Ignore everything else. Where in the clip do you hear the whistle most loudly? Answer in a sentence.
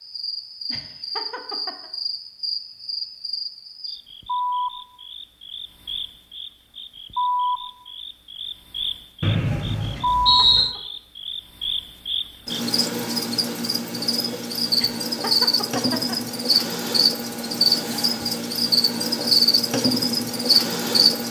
The volume of the whistle peaks at 10 seconds.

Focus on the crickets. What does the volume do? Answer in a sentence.
The volume of the crickets goes up.